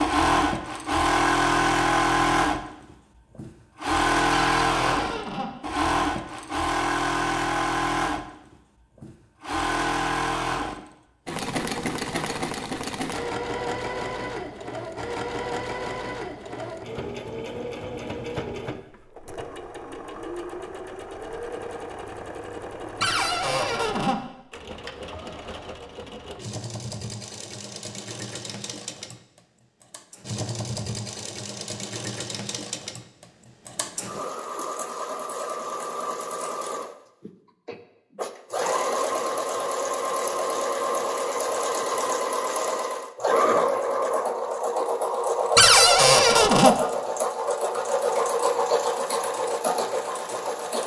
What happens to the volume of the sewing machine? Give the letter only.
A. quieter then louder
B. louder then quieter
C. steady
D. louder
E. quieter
A.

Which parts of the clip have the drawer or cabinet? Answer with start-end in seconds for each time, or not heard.
4.3-5.5, 23.0-24.2, 45.5-46.8.